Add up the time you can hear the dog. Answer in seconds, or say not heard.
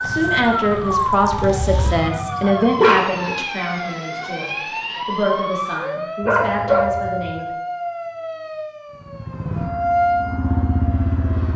2 s.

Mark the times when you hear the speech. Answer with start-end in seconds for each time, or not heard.
0.0-7.5.